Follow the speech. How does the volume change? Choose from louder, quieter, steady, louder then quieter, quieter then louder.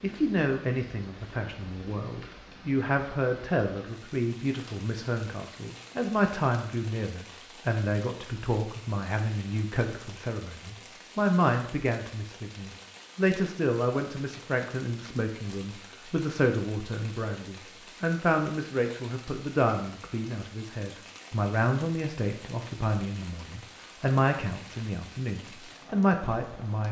steady.